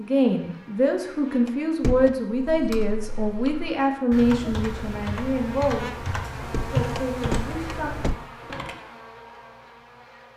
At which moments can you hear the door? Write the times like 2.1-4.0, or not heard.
1.4-2.1, 6.5-8.2.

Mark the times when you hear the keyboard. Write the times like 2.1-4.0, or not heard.
2.3-8.8.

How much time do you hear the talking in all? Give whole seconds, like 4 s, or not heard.
8 s.